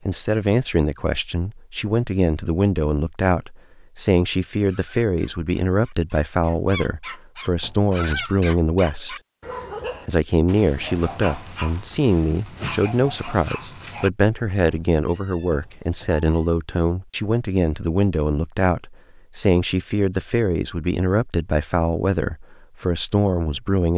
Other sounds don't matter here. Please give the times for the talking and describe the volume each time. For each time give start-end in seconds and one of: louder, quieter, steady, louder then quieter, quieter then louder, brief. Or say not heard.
0.1-9.2 steady
10.1-23.9 steady.